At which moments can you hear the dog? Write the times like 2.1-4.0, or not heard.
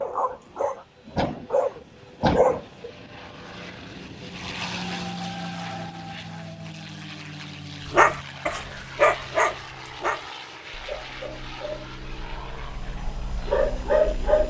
0.0-2.9, 7.8-14.4.